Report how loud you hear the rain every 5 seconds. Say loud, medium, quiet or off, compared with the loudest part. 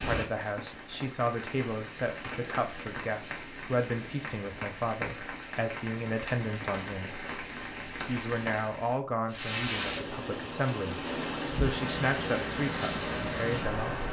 medium, loud, loud.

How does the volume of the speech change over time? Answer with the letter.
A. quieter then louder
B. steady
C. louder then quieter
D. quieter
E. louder
B.